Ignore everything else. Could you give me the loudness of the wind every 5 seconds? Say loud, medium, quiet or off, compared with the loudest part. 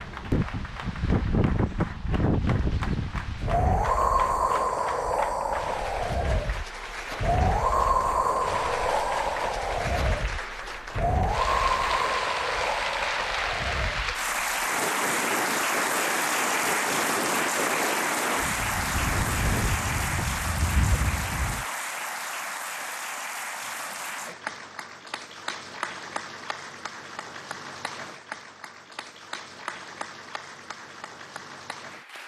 loud, loud, loud, medium, medium, off, off.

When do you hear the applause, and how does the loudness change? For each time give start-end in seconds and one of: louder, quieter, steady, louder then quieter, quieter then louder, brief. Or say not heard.
0.0-32.2 louder then quieter.